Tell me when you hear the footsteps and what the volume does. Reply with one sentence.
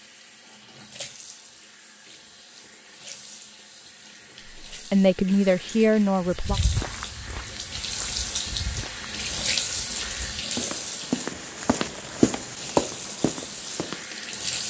You can hear the footsteps from 6.2 to 14.1 s, getting quieter then louder.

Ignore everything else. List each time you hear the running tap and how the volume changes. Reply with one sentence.
The running tap can be heard from 0.0 to 14.6 s, getting louder then quieter.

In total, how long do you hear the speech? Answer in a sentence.
You can hear the speech for 2 seconds altogether.